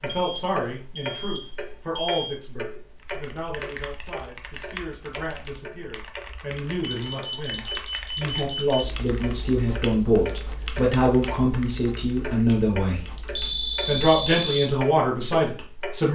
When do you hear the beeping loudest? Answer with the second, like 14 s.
14 s.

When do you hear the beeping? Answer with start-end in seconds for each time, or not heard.
0.1-2.4, 6.8-8.8, 13.2-14.7.